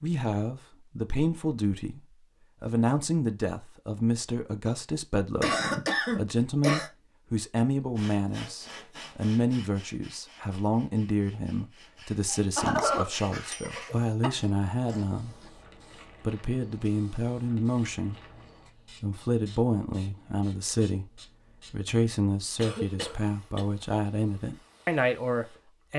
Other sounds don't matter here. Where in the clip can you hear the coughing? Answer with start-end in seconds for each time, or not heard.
5.4-6.9, 12.3-14.3, 22.6-23.6.